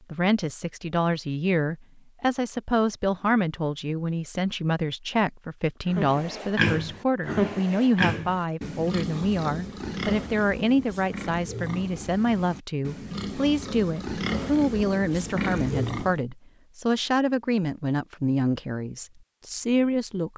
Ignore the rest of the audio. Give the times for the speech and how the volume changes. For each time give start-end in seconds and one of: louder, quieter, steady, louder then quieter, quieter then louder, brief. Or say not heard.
0.1-20.3 steady.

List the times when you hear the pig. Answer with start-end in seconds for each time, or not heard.
5.8-16.2.